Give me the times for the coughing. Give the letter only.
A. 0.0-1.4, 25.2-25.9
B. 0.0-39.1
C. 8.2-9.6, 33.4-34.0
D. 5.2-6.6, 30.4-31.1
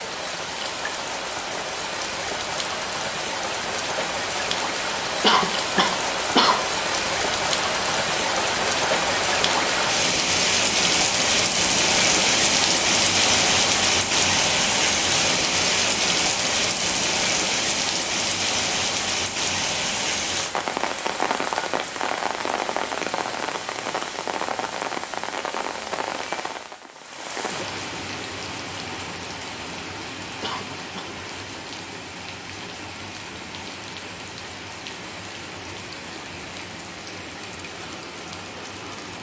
D.